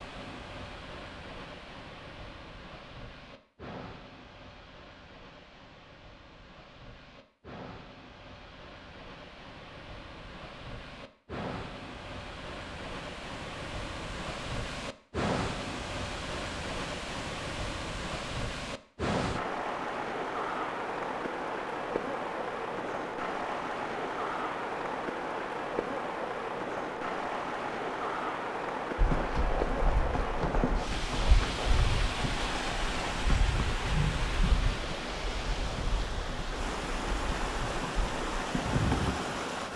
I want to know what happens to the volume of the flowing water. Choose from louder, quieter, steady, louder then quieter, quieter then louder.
louder.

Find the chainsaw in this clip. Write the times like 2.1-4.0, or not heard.
not heard.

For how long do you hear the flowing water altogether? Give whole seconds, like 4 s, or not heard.
40 s.